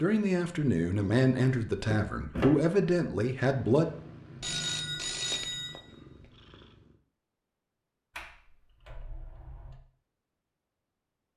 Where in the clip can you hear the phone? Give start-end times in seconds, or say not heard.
4.4-6.3.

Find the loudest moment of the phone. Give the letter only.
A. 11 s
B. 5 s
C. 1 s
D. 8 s
B.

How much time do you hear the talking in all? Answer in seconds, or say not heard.
4 s.